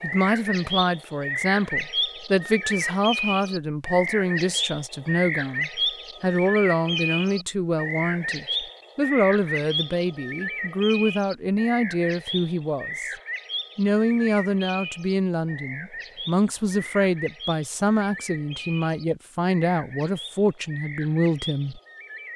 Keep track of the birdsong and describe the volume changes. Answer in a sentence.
The volume of the birdsong goes down.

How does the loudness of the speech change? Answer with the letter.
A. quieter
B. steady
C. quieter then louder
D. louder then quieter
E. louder
B.